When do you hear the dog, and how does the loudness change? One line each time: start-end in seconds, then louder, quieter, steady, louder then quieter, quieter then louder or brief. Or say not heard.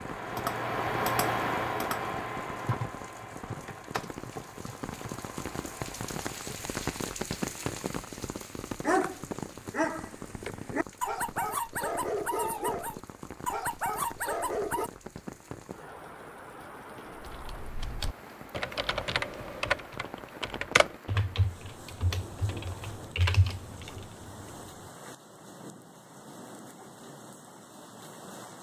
8.8-14.9 steady.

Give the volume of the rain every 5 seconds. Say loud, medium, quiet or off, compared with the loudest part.
medium, loud, medium, medium, medium, medium.